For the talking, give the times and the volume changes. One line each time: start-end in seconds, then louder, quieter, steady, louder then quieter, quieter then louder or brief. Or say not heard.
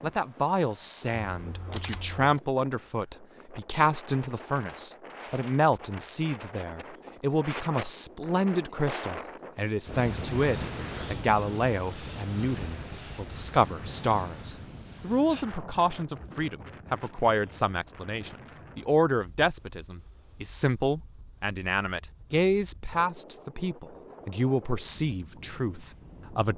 0.0-26.5 steady.